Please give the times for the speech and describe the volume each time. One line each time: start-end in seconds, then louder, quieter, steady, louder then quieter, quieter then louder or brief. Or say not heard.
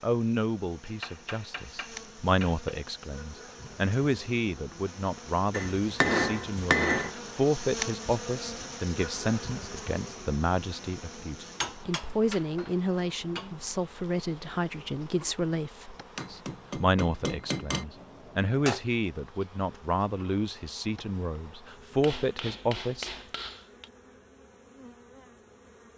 0.0-23.2 steady.